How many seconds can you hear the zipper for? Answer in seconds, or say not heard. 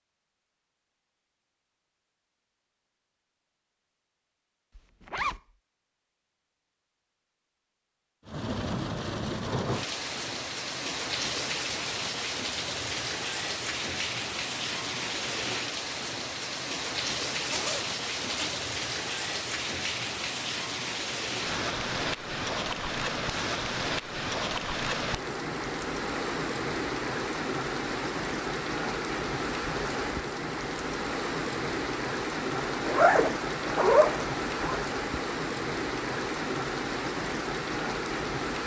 4 s.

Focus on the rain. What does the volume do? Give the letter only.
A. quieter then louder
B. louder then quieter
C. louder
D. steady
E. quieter
D.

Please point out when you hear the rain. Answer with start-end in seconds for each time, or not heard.
8.2-38.6.